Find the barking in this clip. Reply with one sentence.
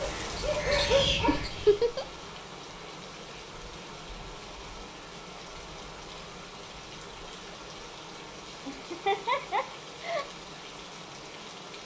The barking can be heard from 0.0 to 1.8 s.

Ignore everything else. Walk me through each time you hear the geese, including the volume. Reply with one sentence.
The geese can't be heard in this clip.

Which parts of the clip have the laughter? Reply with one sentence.
You can hear the laughter from 1.2 to 2.0 s and from 8.7 to 10.2 s.